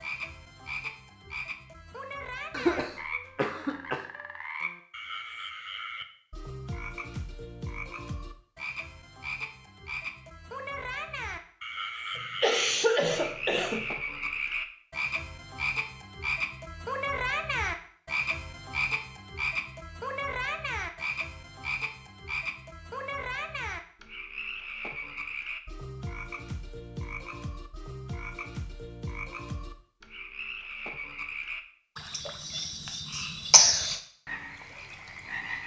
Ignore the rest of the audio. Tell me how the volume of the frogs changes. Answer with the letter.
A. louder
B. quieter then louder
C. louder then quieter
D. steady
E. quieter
C.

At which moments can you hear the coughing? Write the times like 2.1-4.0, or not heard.
2.5-4.0, 12.2-13.9, 32.1-34.0.